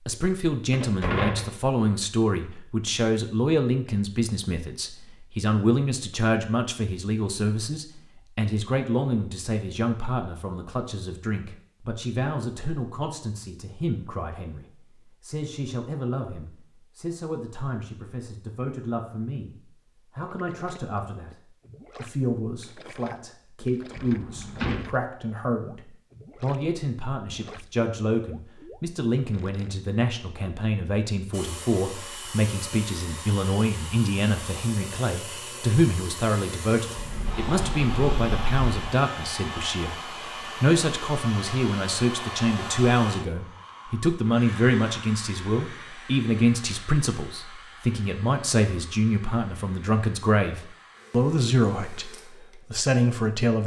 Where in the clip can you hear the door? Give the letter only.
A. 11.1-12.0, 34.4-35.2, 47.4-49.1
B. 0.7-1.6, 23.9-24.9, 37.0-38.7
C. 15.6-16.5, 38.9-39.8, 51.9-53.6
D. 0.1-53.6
B.